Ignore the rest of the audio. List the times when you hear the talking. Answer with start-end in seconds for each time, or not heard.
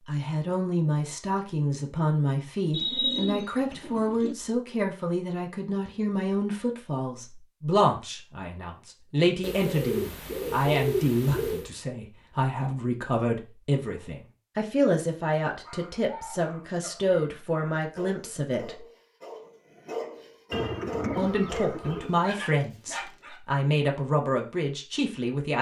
0.1-18.8, 21.1-25.5.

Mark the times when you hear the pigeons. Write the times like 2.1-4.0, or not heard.
2.7-4.3, 9.4-11.7, 20.5-22.1.